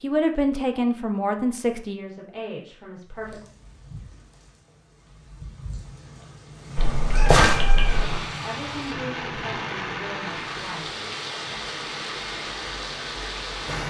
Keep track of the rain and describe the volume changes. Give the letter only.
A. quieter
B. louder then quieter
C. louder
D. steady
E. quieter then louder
C.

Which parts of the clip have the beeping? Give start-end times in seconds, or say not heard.
not heard.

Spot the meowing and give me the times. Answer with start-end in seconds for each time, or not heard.
6.8-8.2.